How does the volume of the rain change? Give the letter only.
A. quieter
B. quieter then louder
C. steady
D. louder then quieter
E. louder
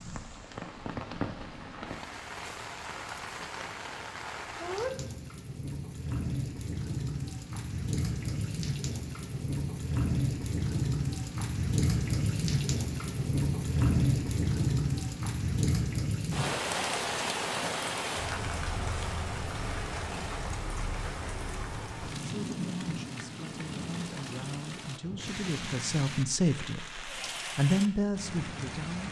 D.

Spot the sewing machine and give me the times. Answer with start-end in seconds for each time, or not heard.
not heard.